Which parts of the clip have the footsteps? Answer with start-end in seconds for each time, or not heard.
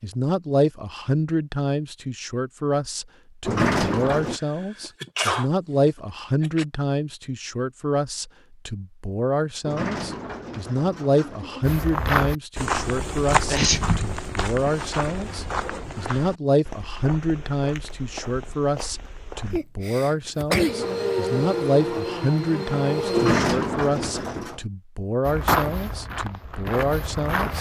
11.6-19.6, 25.2-27.5.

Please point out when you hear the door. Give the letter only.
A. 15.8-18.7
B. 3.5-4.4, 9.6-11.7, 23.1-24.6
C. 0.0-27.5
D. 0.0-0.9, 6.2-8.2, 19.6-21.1
B.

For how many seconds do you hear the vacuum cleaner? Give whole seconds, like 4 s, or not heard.
3 s.